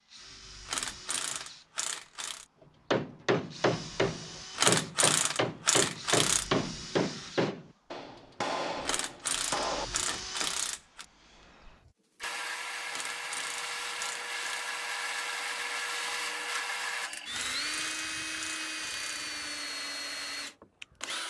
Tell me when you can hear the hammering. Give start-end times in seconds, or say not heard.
2.9-10.5.